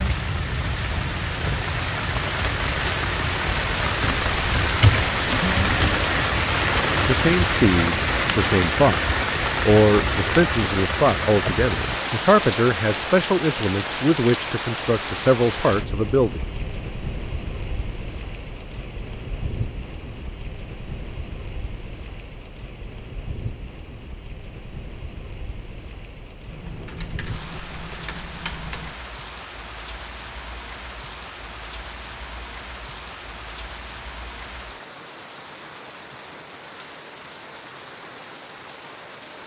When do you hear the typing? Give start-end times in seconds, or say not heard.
4.0-5.8, 26.5-28.9.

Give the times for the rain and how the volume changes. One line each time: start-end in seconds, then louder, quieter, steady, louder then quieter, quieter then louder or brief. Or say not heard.
0.0-39.4 quieter.